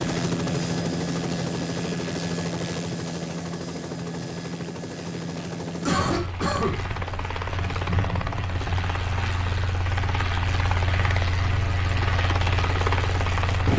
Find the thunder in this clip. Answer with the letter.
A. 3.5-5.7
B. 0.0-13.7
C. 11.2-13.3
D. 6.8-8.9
D.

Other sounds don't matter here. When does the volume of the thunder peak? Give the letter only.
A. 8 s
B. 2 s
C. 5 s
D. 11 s
A.